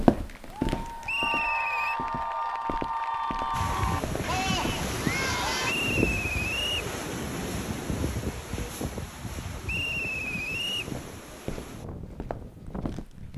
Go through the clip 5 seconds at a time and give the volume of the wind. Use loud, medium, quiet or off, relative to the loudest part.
loud, loud, medium.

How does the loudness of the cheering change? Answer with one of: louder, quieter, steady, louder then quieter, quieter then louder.
steady.